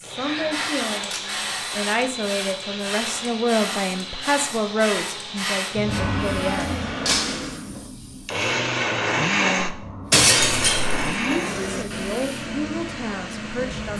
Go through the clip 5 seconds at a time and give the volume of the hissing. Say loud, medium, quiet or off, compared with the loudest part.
loud, loud, medium.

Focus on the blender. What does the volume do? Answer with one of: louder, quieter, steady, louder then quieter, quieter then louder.
louder then quieter.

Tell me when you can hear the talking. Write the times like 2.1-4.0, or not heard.
0.0-6.7, 11.2-13.9.